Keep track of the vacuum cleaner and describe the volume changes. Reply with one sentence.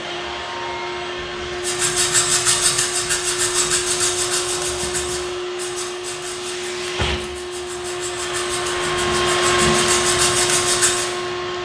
The volume of the vacuum cleaner goes up.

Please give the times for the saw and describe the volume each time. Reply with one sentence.
You can hear the saw from 1.6 to 11.1 s, getting quieter then louder.